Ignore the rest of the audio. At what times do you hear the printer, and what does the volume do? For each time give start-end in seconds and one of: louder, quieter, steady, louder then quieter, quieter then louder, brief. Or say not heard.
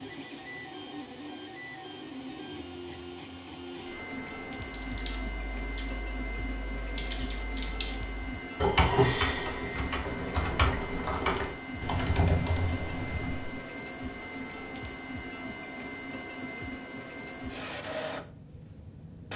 0.0-19.3 steady.